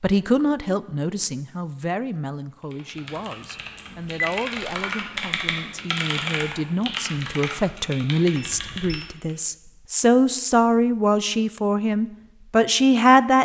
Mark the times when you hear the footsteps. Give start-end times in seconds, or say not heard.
not heard.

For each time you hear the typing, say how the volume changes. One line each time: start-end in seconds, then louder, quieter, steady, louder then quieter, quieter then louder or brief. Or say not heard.
2.7-9.3 louder then quieter.